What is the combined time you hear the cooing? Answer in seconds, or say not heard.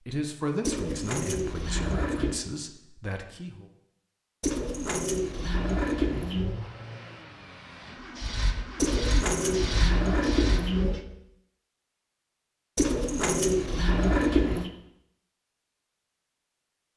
8 s.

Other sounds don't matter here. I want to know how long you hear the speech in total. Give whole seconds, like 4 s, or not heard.
4 s.